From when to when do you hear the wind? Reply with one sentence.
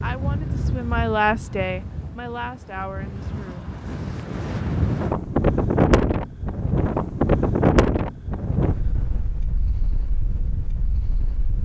You can hear the wind from 0.0 to 11.5 s.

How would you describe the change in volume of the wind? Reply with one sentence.
The loudness of the wind goes up, then down.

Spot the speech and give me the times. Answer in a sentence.
The speech can be heard from 0.0 to 3.8 s.